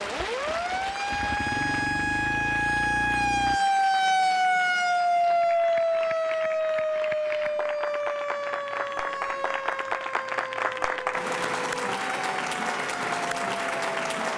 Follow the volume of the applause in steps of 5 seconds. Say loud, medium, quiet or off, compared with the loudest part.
medium, medium, loud.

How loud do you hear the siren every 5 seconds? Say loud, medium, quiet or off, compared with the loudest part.
loud, loud, medium.